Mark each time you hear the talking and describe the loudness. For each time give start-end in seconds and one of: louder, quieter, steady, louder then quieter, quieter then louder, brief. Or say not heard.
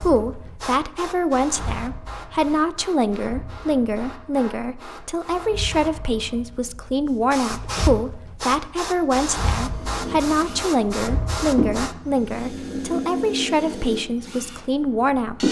0.0-15.4 steady.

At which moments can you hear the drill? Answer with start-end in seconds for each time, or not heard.
9.7-15.4.